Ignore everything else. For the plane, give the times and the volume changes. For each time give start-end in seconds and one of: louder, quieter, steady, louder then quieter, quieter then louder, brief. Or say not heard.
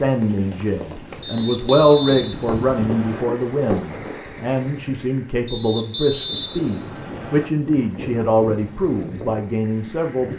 not heard.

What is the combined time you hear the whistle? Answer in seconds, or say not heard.
4 s.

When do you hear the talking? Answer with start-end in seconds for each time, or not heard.
0.0-10.3.